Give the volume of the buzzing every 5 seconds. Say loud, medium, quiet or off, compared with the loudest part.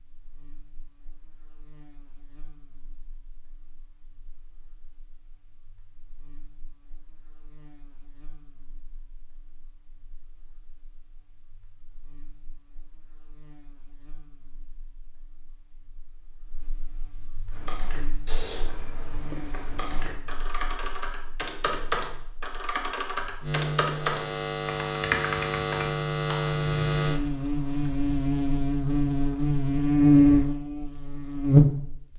quiet, quiet, quiet, quiet, quiet, medium, loud.